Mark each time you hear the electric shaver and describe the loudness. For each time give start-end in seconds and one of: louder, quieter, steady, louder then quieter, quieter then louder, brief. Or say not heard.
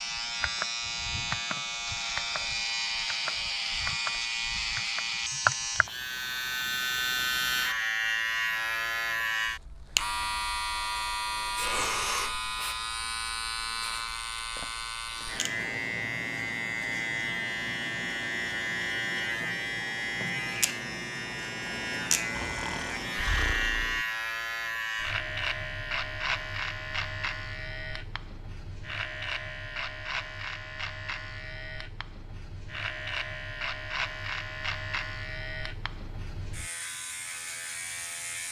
0.0-38.4 quieter.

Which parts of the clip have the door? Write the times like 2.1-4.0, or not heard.
not heard.